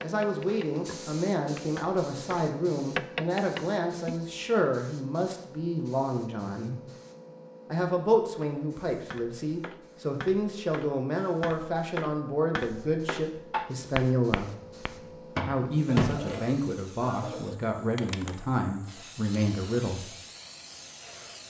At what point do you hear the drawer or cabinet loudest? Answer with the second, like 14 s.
16 s.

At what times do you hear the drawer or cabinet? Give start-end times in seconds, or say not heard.
14.6-16.4.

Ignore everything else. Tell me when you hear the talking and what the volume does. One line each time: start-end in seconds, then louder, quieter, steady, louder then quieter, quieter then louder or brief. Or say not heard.
0.0-6.8 steady
7.7-14.5 steady
15.4-20.1 steady.